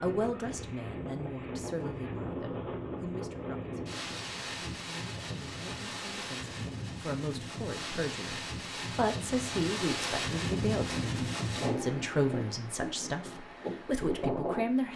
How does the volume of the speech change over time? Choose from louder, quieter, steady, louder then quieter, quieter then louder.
quieter then louder.